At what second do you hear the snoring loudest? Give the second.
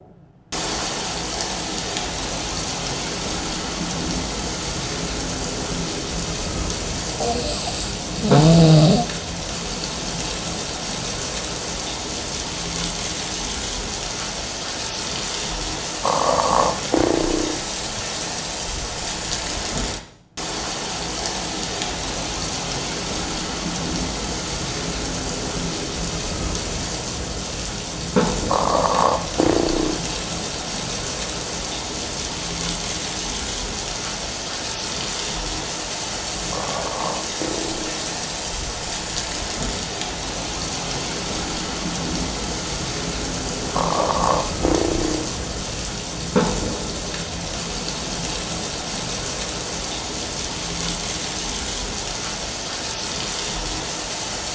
9 s.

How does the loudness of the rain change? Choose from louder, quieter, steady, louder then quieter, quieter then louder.
steady.